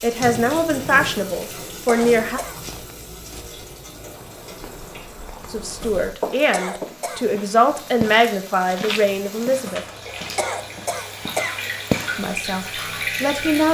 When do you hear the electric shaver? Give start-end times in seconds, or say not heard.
not heard.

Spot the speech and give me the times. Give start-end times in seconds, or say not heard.
0.0-2.4, 5.5-9.8, 12.2-13.6.